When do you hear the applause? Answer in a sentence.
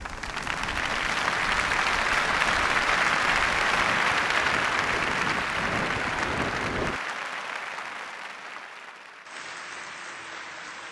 You can hear the applause from 0.0 to 10.8 s.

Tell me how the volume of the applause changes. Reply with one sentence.
The volume of the applause goes down.